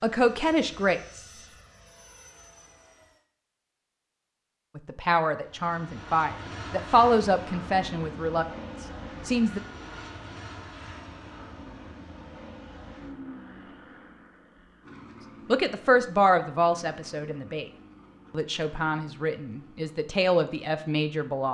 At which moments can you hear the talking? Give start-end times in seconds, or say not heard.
0.0-1.2, 4.8-9.6, 15.4-17.7, 18.3-21.4.